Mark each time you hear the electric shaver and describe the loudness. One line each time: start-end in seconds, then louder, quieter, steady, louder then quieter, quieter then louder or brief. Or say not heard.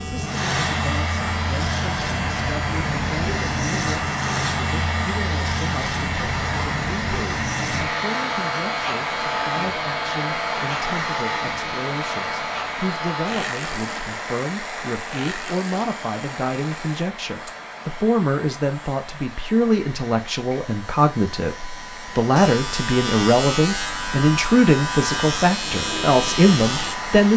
0.0-27.3 quieter then louder.